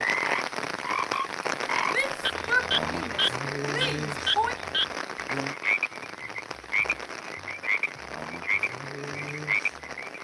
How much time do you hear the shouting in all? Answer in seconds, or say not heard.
3 s.